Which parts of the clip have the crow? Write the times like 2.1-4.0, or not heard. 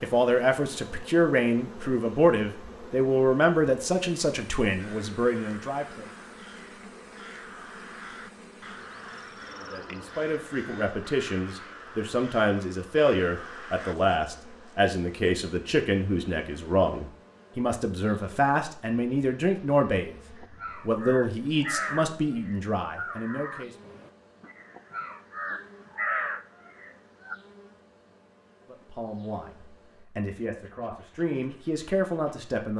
4.8-13.9, 20.4-27.4.